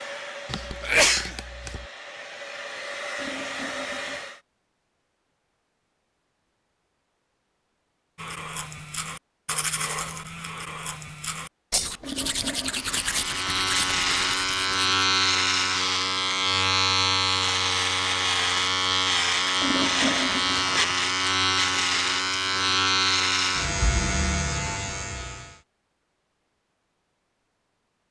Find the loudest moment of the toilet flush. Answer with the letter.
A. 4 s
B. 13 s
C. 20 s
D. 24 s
C.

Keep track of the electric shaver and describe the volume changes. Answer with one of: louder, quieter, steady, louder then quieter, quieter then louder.
steady.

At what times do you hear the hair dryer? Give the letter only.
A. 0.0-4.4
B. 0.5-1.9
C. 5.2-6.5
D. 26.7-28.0
A.